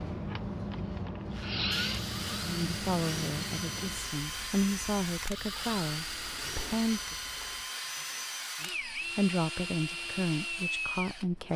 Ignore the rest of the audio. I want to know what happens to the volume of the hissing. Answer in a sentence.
The volume of the hissing goes down.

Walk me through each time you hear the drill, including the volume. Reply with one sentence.
You can hear the drill from 0.1 to 11.5 s, at a steady volume.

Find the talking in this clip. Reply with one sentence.
The talking can be heard from 2.4 to 7.2 s and from 8.6 to 11.5 s.